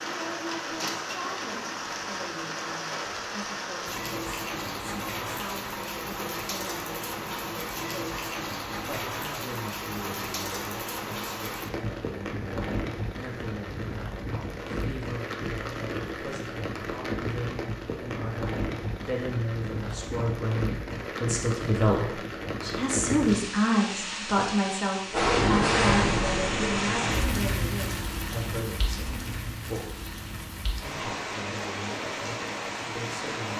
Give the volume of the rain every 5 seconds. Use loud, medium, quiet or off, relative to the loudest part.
medium, medium, medium, medium, medium, loud, medium.